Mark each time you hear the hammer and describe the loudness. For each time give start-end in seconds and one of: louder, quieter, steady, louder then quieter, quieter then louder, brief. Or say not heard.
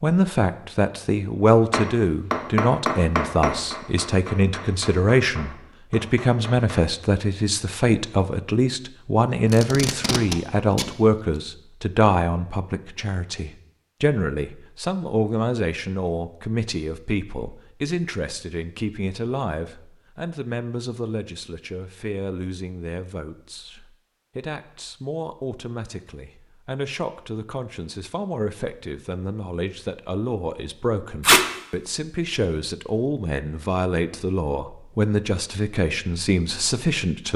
1.7-6.9 quieter.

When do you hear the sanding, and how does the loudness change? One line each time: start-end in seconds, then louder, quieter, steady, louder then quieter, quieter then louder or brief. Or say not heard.
not heard.